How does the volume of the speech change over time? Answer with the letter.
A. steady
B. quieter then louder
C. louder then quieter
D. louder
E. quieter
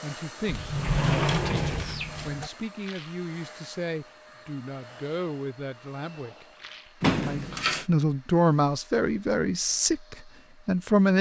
D.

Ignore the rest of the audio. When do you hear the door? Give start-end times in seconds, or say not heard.
0.5-2.5, 7.0-7.8.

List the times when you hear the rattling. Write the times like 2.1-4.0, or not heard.
2.8-3.2, 6.5-7.0.